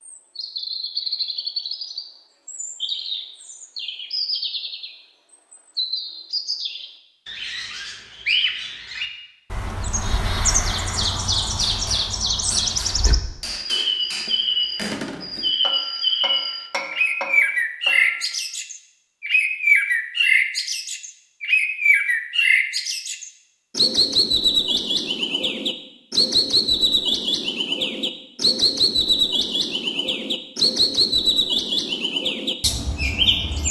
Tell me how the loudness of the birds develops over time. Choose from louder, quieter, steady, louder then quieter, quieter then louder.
louder.